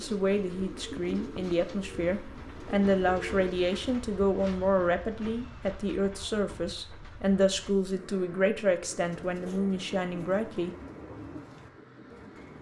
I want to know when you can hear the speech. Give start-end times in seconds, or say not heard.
0.0-10.8.